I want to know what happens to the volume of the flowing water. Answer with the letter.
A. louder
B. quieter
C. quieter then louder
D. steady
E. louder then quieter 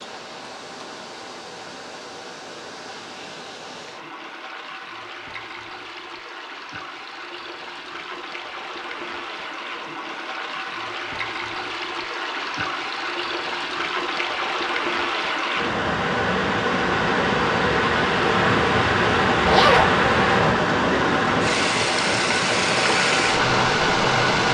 A.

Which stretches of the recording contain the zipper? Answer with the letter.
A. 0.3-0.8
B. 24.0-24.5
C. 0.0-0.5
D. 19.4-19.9
D.